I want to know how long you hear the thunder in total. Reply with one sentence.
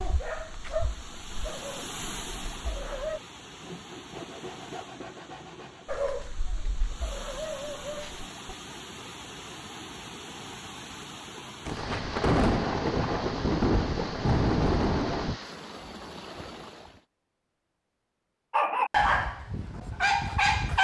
You can hear the thunder for 4 seconds altogether.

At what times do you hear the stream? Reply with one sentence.
The stream can be heard from 0.0 to 17.1 s.